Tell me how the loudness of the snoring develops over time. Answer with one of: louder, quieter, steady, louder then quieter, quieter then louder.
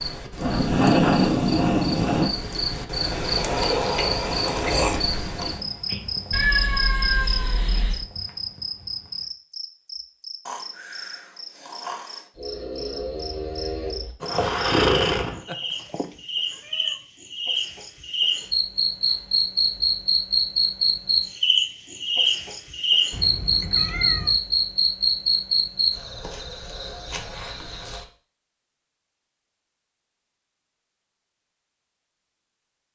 louder.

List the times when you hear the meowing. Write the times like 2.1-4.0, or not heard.
6.3-8.1, 15.4-16.9, 23.1-24.4.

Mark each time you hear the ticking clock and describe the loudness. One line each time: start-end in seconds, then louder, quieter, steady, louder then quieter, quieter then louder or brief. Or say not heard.
not heard.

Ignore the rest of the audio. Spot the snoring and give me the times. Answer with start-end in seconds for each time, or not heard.
10.4-15.4.